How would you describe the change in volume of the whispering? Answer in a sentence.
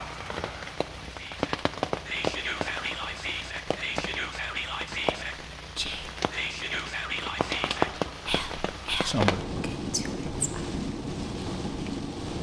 The volume of the whispering stays about the same.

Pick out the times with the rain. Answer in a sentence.
You can hear the rain from 0.0 to 12.3 s.